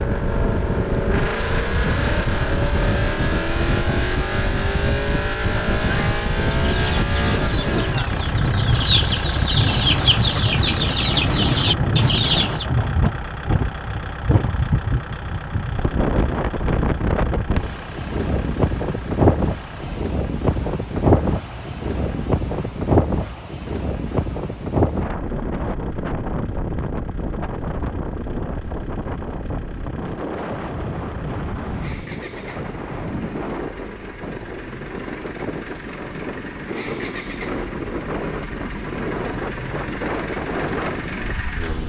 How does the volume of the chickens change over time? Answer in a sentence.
The volume of the chickens goes up.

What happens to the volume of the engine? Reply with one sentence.
The volume of the engine goes down, then up.